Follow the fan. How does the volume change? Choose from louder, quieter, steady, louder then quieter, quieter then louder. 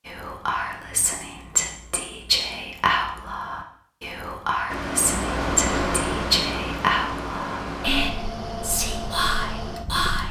quieter.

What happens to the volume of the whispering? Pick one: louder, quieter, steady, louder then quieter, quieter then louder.
steady.